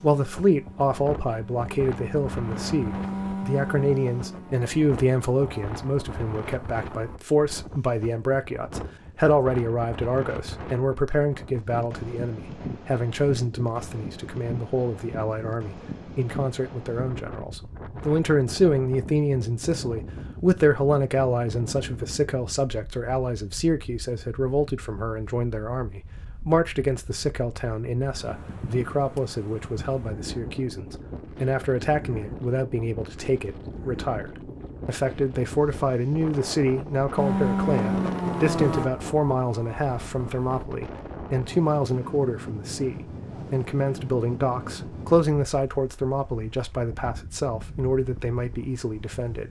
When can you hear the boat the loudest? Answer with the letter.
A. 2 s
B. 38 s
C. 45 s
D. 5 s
B.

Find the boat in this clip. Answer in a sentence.
The boat can be heard from 0.0 to 7.2 s and from 37.1 to 40.6 s.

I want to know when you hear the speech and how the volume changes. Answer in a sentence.
You can hear the speech from 0.0 to 49.4 s, at a steady volume.